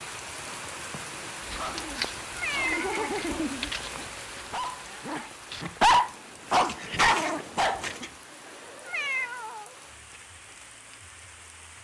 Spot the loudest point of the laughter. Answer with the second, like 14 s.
3 s.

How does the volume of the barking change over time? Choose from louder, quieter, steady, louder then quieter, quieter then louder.
louder.